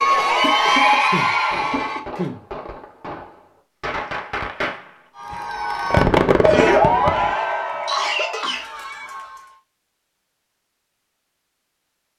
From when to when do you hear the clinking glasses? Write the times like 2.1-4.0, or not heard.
not heard.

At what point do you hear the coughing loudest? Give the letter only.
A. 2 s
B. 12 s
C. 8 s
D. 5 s
C.